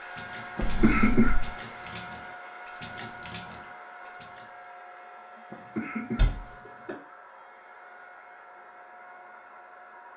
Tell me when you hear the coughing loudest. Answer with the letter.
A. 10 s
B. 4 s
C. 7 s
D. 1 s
D.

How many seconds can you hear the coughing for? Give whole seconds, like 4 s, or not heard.
2 s.